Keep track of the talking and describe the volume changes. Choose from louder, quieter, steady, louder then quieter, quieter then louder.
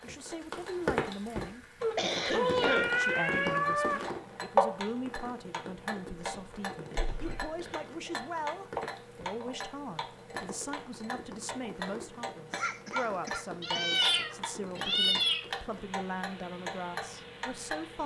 steady.